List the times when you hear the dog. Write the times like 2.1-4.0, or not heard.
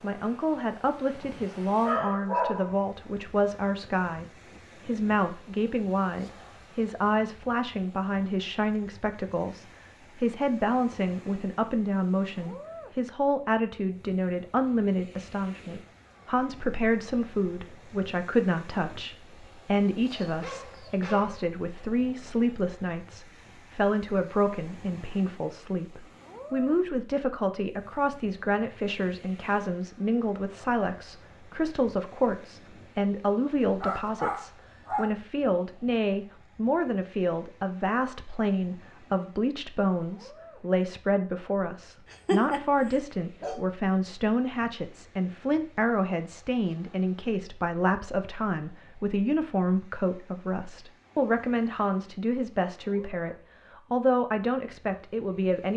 1.2-2.8, 20.1-21.5, 33.8-35.1, 42.1-43.6.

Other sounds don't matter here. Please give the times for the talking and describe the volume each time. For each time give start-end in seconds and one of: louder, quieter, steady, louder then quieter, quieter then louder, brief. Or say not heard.
0.0-55.7 steady.